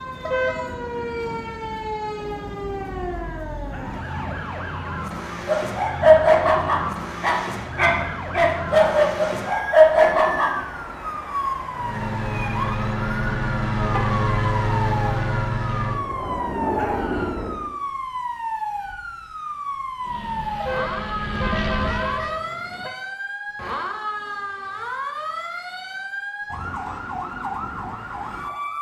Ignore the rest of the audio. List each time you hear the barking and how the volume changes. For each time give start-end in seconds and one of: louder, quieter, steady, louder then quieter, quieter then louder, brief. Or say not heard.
5.5-10.6 quieter then louder.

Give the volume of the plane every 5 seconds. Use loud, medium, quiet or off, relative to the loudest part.
off, off, loud, loud, medium, off.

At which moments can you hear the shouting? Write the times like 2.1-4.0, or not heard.
3.7-4.8, 16.8-17.4.